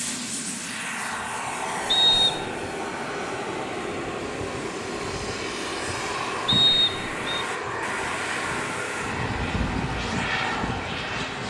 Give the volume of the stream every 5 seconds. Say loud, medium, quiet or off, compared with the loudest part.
medium, loud, loud.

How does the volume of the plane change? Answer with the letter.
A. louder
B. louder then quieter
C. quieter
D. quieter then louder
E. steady
E.